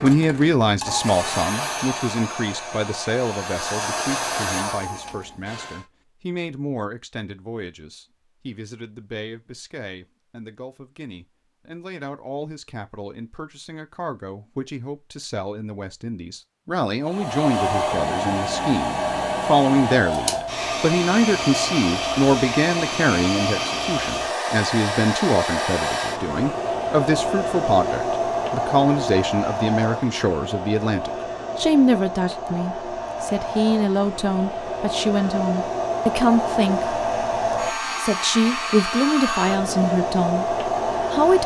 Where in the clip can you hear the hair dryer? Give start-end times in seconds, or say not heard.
0.0-5.8, 17.0-41.4.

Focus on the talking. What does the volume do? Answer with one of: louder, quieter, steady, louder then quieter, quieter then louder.
quieter then louder.